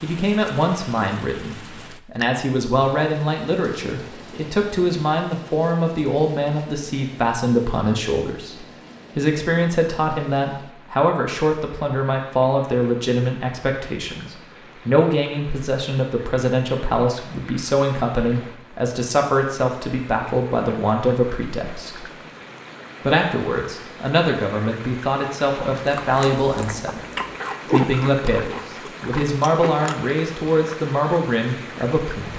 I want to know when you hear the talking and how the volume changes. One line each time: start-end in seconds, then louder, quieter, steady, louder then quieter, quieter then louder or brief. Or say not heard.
0.0-22.1 steady
23.0-27.0 louder
27.6-32.3 steady.